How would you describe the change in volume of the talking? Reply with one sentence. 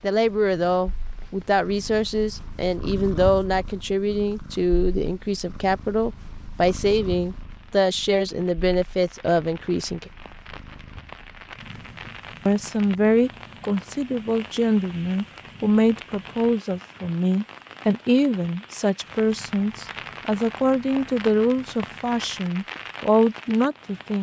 The volume of the talking stays about the same.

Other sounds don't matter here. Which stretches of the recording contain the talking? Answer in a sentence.
The talking can be heard from 0.0 to 10.1 s and from 12.4 to 24.1 s.